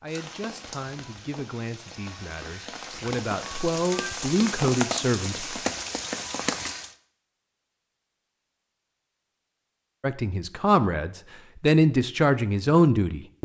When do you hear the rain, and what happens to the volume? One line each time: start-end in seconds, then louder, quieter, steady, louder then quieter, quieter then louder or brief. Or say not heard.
0.1-7.0 louder.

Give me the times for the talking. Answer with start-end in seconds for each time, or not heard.
0.0-5.5, 10.0-13.4.